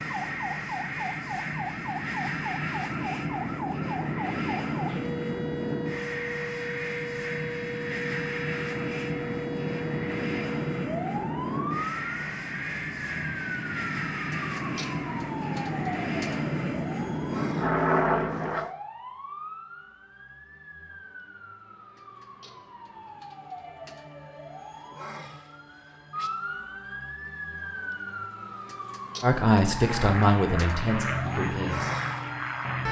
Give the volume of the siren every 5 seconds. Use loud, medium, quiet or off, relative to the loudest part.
loud, loud, loud, loud, medium, loud, loud.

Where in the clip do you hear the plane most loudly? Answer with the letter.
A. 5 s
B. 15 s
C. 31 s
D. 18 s
D.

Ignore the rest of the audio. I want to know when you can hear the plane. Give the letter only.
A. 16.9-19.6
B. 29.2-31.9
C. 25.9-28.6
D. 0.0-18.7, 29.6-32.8
D.